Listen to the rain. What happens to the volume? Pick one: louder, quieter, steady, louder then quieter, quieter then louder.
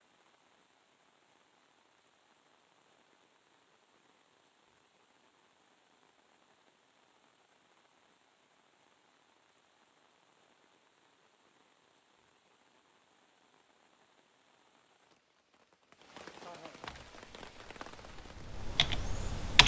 louder.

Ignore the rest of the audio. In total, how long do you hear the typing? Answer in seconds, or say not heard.
3 s.